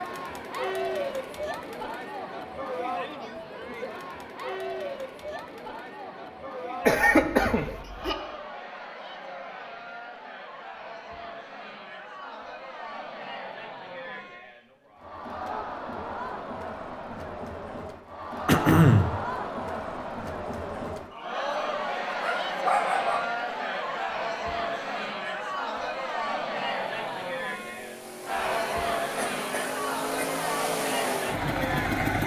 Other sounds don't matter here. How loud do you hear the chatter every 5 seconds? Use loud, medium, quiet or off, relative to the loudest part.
loud, medium, medium, loud, loud, loud, loud.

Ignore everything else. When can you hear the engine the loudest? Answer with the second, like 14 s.
32 s.